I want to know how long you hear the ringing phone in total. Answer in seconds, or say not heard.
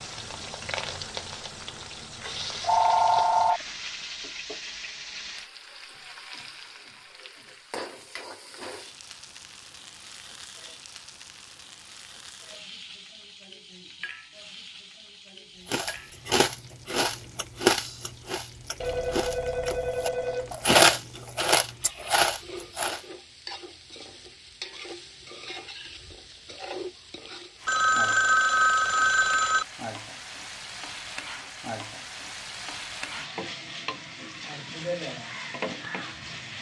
5 s.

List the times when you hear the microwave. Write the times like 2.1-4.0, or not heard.
not heard.